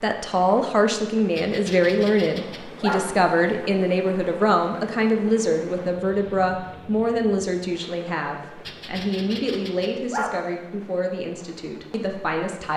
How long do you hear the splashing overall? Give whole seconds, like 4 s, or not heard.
not heard.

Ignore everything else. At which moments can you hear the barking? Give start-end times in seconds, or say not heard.
1.4-3.0, 8.7-10.3.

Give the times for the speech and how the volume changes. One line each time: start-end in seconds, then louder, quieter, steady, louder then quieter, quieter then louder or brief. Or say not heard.
0.0-12.7 quieter.